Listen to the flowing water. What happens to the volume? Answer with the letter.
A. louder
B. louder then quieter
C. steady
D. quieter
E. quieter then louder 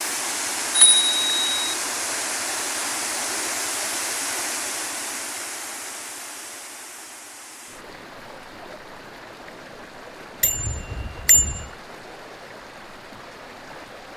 D.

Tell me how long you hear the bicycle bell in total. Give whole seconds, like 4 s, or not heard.
2 s.